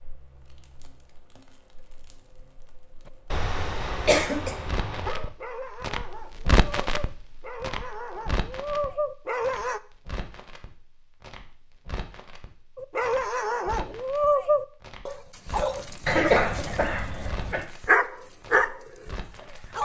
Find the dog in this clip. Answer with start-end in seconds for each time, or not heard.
3.3-9.8, 12.8-19.8.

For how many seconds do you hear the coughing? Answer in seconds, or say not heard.
2 s.